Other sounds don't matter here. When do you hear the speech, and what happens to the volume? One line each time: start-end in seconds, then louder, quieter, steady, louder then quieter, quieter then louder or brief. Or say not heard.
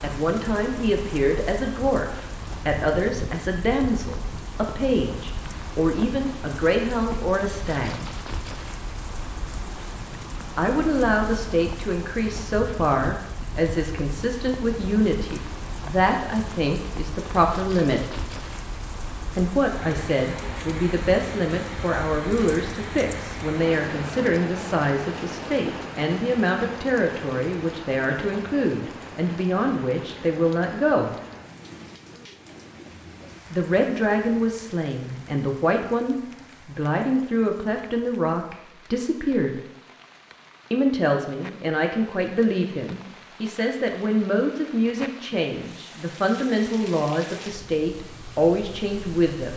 0.0-8.1 steady
10.6-18.1 steady
19.4-31.1 steady
33.5-39.5 steady
40.7-49.5 steady.